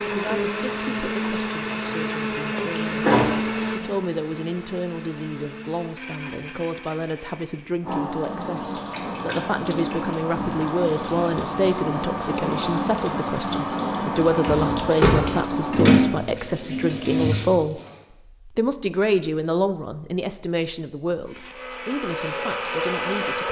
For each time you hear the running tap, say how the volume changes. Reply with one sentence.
The running tap can be heard from 7.8 to 17.9 s, getting louder.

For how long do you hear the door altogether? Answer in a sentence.
You can hear the door for 2 seconds altogether.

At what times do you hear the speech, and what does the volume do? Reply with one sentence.
You can hear the speech from 0.1 to 17.8 s, getting louder; and from 18.4 to 23.4 s, getting quieter.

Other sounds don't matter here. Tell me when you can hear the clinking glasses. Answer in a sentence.
You can't hear the clinking glasses here.